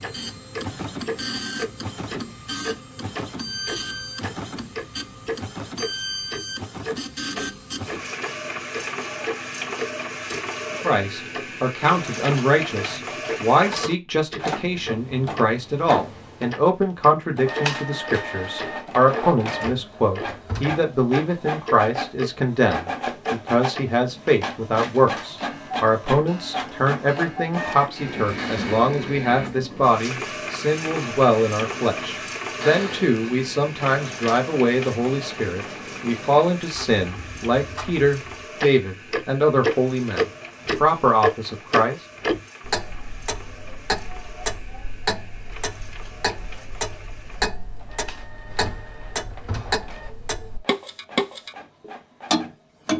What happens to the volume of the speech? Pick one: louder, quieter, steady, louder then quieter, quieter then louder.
steady.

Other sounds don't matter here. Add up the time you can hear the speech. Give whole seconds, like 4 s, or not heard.
31 s.